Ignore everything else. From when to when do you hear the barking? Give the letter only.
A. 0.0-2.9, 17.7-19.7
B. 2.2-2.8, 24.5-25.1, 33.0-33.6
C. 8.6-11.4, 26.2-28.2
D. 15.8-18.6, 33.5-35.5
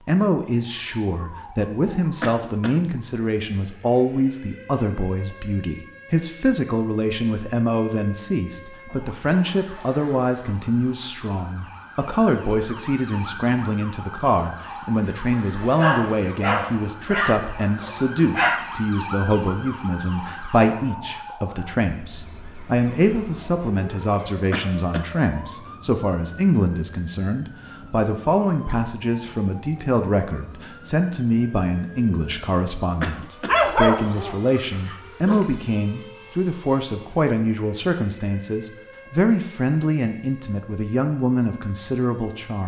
D.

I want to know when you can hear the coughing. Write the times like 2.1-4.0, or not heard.
2.2-2.8, 24.5-25.1, 33.0-33.6.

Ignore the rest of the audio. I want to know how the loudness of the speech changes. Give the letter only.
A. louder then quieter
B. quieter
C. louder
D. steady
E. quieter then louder
D.